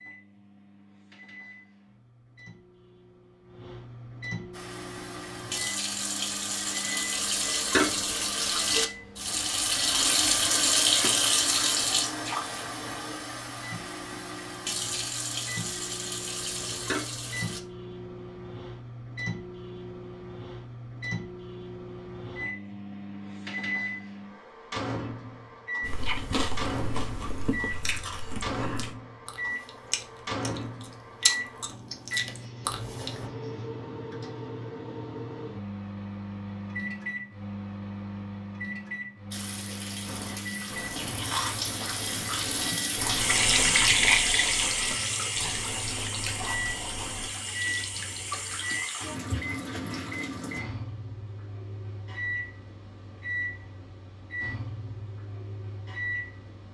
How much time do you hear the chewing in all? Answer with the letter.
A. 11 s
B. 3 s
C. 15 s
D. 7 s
C.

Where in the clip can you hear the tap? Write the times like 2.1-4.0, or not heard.
4.5-17.6, 39.3-50.6.